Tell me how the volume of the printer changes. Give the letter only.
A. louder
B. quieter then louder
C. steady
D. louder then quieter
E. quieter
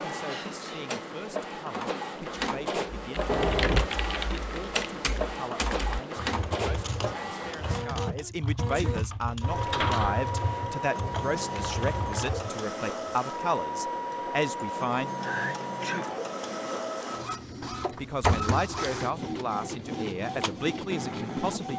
C.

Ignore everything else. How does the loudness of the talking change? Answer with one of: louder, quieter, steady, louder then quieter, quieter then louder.
louder.